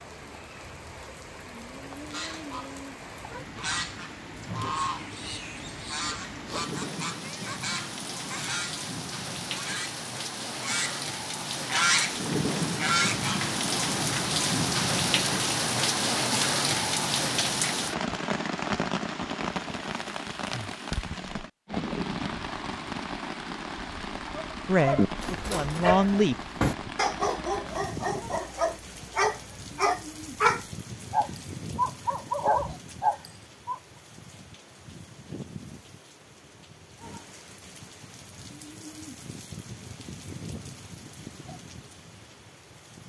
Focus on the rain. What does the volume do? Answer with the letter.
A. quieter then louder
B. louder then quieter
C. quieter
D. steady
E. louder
B.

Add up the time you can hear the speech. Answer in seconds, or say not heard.
2 s.